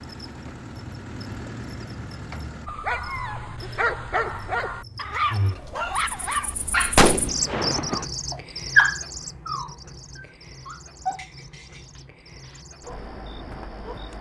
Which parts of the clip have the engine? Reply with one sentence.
The engine can be heard from 0.0 to 2.7 s.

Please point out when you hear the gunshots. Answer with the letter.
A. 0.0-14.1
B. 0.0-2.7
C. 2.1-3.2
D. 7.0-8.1
D.